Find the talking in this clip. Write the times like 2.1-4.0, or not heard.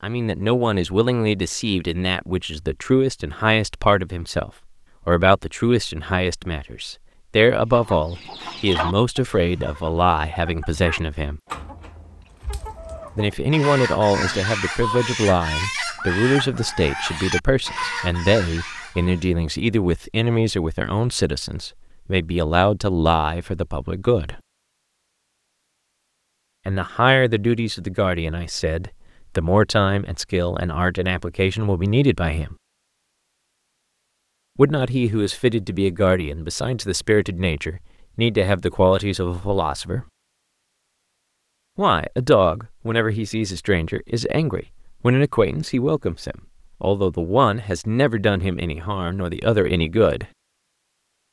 0.0-11.4, 13.2-24.4, 26.6-32.5, 34.5-40.0, 41.8-50.2.